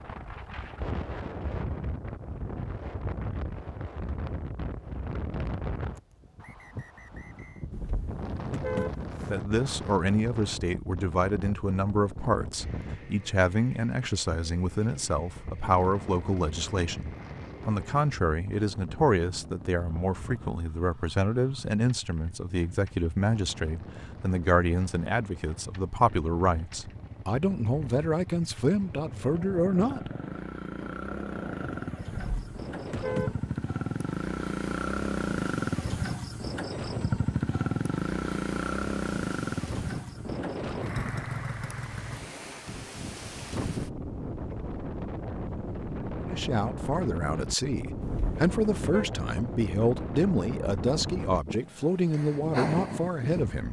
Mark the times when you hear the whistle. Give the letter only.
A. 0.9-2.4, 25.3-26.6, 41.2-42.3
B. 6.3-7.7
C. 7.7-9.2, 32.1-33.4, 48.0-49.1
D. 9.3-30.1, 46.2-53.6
B.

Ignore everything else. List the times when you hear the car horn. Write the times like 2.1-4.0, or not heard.
7.7-9.2, 32.1-33.4, 48.0-49.1.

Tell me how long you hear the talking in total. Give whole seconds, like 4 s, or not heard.
28 s.